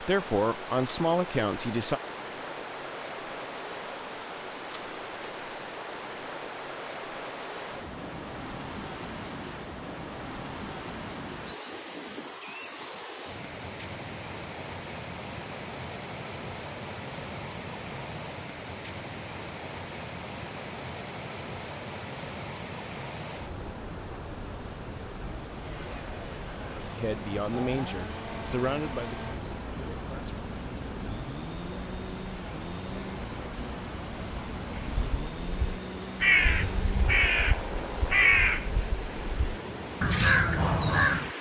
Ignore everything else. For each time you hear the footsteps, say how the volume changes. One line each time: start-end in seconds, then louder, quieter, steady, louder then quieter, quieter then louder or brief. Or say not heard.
not heard.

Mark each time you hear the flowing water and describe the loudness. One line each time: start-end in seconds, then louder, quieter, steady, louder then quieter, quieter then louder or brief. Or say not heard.
0.0-41.3 steady.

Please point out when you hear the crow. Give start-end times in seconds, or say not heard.
34.9-41.3.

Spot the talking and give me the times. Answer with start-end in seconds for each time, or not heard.
0.0-2.0, 26.8-30.4.